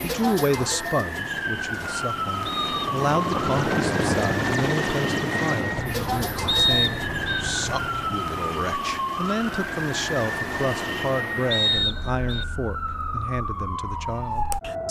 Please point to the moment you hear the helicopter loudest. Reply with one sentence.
The volume of the helicopter peaks at 4 seconds.